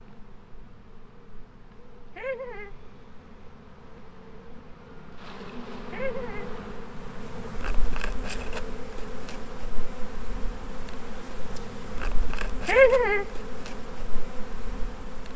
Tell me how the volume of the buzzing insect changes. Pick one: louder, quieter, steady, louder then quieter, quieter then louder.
louder.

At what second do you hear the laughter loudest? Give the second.
13 s.